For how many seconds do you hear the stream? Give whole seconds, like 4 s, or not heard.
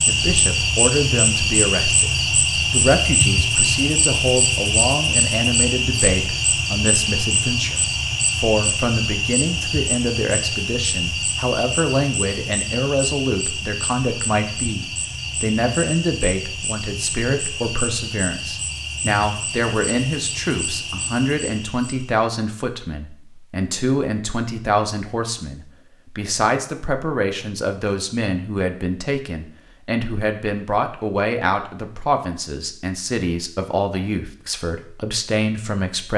not heard.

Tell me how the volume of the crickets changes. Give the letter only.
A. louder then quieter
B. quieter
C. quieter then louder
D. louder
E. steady
B.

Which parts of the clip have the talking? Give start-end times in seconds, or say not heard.
0.1-36.1.